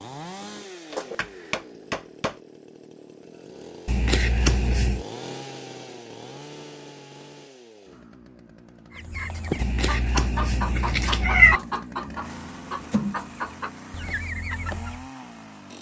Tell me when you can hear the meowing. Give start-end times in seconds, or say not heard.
3.9-5.0, 9.6-11.6.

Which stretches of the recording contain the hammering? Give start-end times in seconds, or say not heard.
0.9-2.4.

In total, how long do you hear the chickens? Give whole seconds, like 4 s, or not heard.
6 s.